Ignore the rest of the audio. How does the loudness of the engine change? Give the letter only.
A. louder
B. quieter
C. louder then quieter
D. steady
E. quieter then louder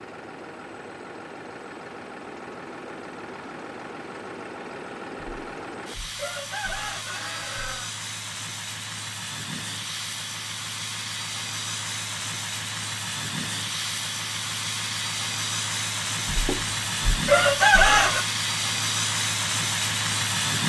A.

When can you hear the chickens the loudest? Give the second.
18 s.